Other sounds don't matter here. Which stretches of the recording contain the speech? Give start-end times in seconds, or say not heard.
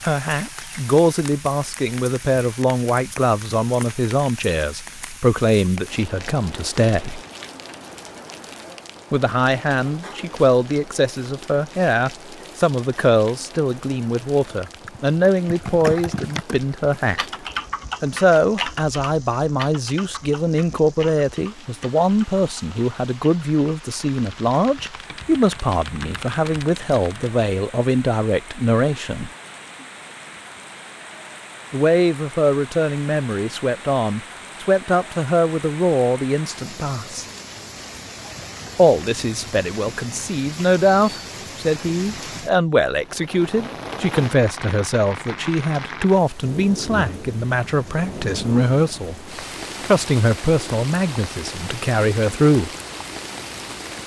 0.0-7.2, 9.1-17.2, 18.0-29.3, 31.7-37.2, 38.8-49.2, 49.8-52.7.